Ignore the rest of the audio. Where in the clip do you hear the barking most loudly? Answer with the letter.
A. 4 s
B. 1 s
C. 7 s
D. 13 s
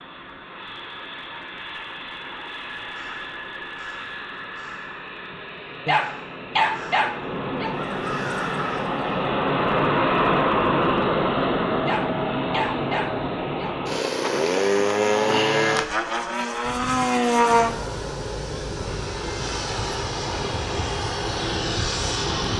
C.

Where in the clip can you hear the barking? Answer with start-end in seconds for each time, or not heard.
5.8-7.8, 11.8-13.8.